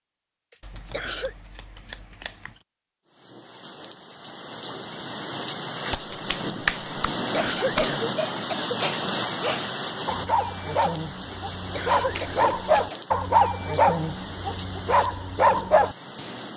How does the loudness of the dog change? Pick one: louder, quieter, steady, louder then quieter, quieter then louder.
louder.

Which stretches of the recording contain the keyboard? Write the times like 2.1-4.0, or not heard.
not heard.